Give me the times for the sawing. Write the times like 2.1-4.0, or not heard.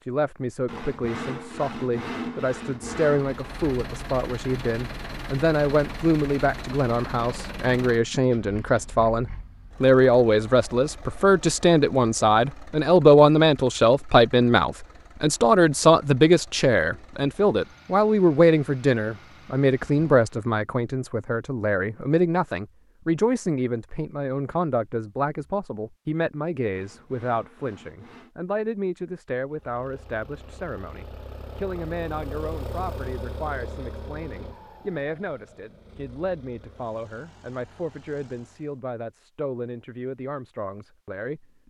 0.7-3.4, 26.7-28.4.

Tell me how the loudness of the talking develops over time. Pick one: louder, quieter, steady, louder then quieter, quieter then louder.
louder then quieter.